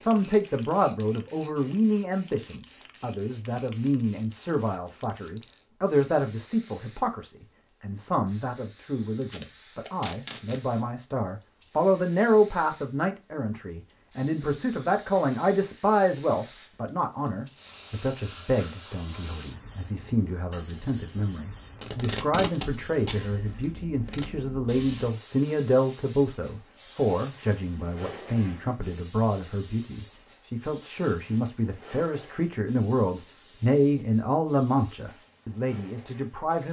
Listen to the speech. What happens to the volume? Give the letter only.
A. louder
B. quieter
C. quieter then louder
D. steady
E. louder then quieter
D.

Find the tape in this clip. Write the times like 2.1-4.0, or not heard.
9.2-10.6, 21.8-24.2.